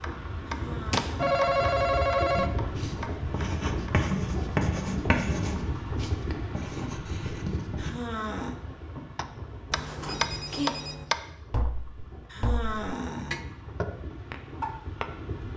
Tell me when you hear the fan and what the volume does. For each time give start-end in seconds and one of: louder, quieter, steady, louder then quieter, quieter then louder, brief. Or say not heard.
0.0-15.5 quieter.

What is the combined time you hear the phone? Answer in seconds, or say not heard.
3 s.